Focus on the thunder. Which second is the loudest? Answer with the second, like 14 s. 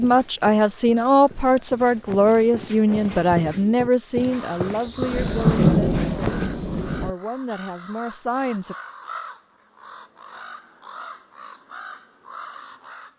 6 s.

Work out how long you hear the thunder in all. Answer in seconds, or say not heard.
2 s.